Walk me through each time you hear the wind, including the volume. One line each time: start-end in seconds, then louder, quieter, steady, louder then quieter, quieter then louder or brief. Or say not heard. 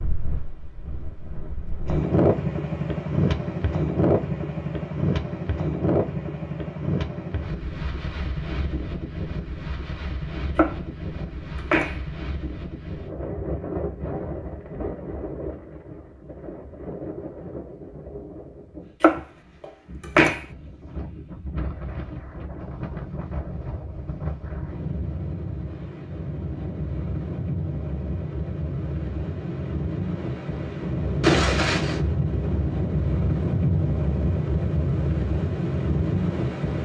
0.0-36.7 quieter then louder.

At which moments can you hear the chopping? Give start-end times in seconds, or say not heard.
10.6-12.0, 19.0-20.4.